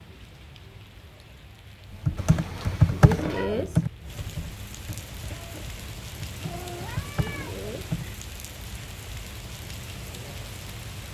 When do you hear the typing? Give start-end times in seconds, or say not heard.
1.9-8.1.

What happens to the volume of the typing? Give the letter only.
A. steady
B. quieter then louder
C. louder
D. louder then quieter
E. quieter
B.